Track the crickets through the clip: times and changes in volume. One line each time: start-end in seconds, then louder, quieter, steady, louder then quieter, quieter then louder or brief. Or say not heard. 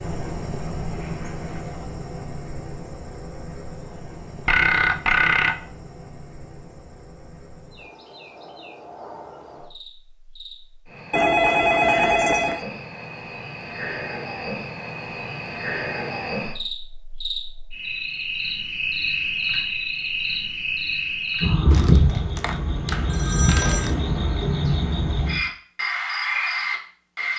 0.0-27.3 quieter then louder.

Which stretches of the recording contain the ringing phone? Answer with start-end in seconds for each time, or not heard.
4.5-5.5, 11.1-12.7, 21.7-23.9.